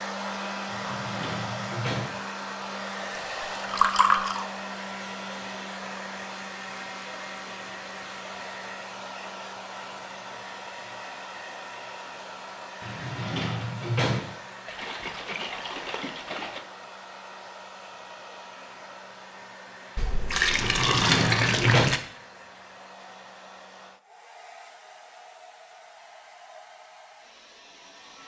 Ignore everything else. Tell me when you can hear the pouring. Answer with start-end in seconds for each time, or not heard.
3.3-4.5, 14.7-16.6, 19.9-22.0.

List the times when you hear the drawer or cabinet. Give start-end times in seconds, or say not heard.
0.7-2.2, 12.8-14.3, 20.6-21.9.